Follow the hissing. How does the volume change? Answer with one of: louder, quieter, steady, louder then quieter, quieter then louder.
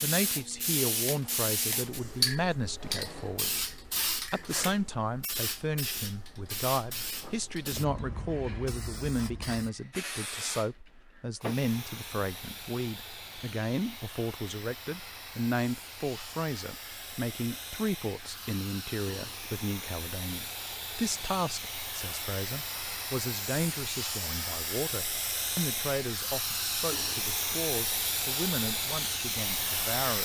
quieter then louder.